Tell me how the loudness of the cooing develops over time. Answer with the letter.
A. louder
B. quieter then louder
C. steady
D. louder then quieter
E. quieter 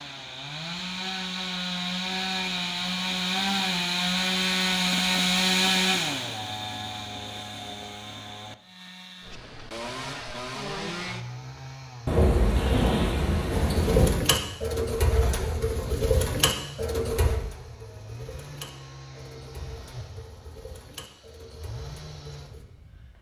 E.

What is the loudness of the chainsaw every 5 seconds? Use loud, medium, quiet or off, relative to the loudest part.
loud, loud, medium, quiet, quiet.